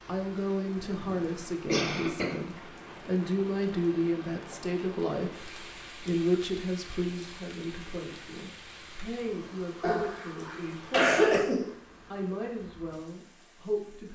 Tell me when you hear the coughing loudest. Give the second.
11 s.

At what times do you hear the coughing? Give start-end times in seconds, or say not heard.
0.8-2.4, 9.8-11.7.